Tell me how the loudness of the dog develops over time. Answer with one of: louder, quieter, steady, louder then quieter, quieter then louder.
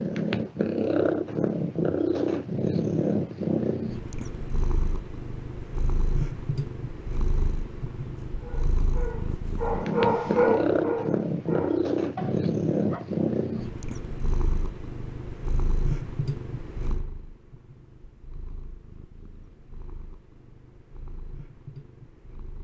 louder then quieter.